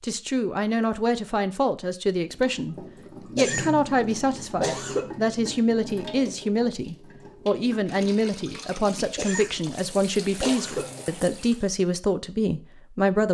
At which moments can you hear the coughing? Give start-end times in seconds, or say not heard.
3.4-5.0, 9.2-11.1.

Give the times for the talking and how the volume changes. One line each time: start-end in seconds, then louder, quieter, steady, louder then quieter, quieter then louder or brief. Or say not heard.
0.0-13.3 steady.